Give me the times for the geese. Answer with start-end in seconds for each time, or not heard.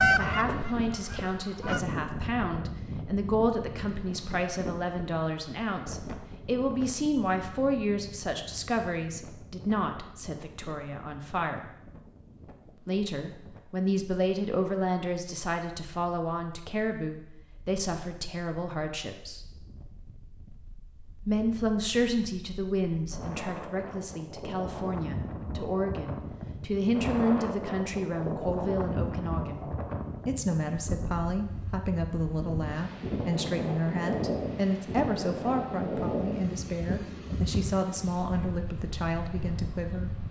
0.0-1.8.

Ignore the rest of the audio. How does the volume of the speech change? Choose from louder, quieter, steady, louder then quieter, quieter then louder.
steady.